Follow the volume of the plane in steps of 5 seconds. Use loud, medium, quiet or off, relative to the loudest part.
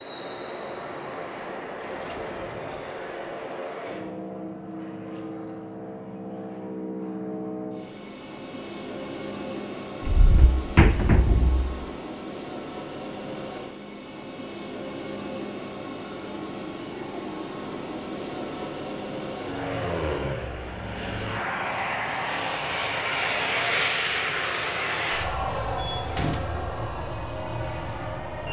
medium, medium, medium, medium, loud, loud.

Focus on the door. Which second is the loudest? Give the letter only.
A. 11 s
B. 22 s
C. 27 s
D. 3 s
A.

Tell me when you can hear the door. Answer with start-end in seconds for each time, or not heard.
1.8-3.5, 10.0-11.8, 25.9-26.6.